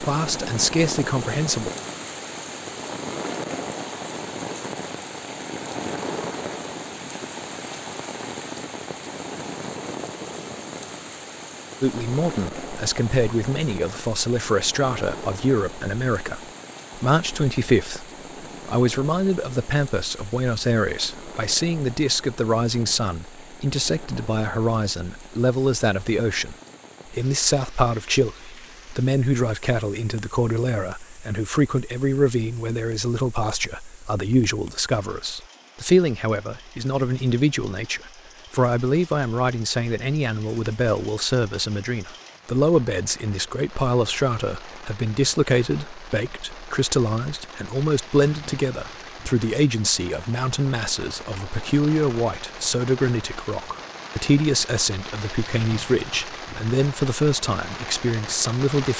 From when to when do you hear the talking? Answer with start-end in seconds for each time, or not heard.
0.0-1.7, 11.8-58.9.